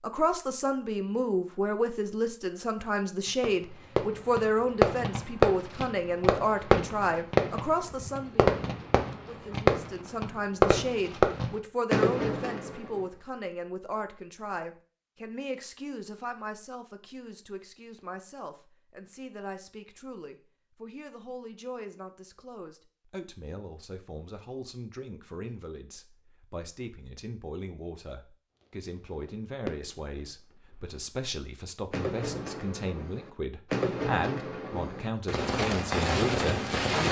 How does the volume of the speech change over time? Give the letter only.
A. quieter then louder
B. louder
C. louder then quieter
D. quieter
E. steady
A.